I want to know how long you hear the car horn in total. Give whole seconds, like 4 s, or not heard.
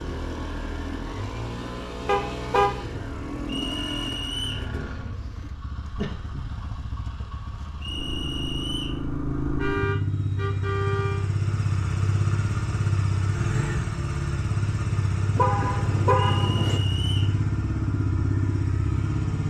4 s.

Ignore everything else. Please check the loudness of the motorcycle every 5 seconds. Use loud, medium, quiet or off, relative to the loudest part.
medium, medium, loud, loud.